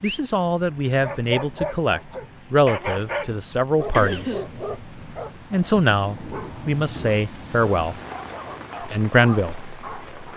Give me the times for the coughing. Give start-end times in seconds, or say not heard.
3.5-4.5.